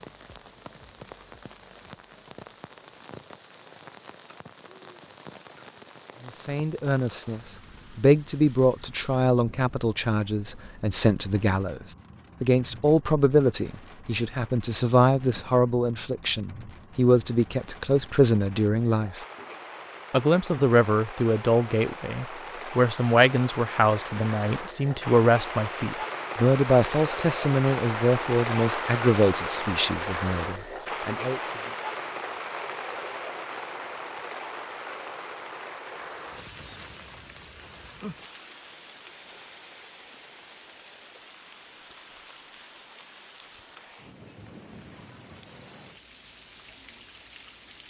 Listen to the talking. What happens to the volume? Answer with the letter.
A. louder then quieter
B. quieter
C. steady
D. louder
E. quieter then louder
C.